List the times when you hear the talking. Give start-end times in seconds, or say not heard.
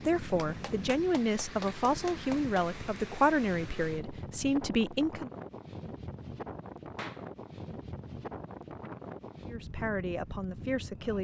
0.0-5.3, 9.4-11.1.